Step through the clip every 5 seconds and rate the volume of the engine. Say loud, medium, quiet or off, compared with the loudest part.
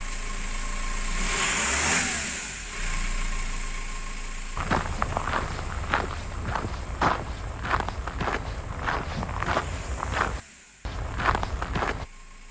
loud, quiet, quiet.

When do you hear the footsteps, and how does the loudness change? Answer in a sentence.
You can hear the footsteps from 4.5 to 12.1 s, at a steady volume.